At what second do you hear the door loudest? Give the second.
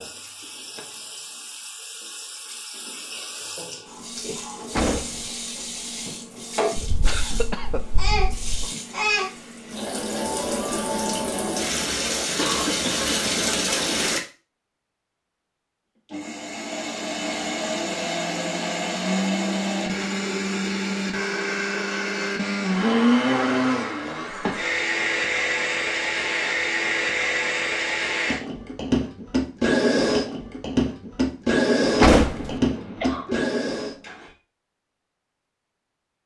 32 s.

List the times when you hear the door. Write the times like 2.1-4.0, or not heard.
4.7-5.3, 31.9-32.6.